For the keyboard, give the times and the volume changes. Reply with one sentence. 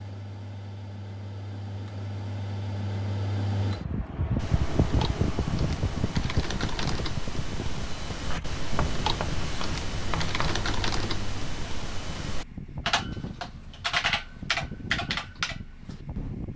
You can hear the keyboard from 4.3 to 16.4 s, getting louder.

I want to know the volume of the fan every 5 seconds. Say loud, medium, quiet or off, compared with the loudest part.
loud, loud, medium, medium.